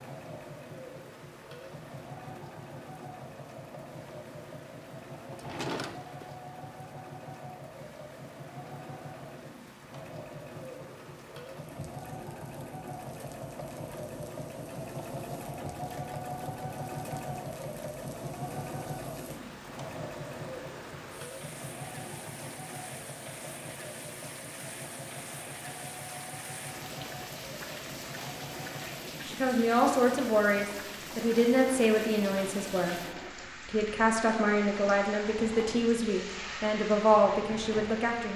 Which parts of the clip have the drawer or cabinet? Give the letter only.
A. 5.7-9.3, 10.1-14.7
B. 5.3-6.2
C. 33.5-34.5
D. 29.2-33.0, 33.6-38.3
B.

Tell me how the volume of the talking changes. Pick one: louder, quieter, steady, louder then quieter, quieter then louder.
steady.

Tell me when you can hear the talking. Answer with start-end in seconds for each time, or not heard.
29.2-33.0, 33.6-38.3.